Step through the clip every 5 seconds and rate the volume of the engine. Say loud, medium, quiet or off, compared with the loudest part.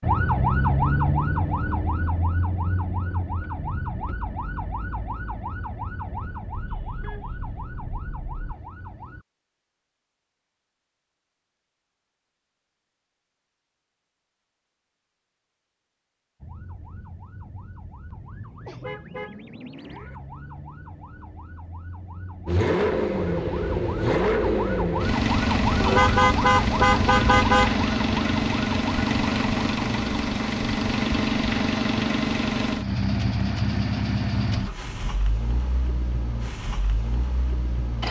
off, off, off, off, loud, loud, loud, medium.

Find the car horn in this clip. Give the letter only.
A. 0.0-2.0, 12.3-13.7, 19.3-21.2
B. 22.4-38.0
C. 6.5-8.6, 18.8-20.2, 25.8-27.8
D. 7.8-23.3
C.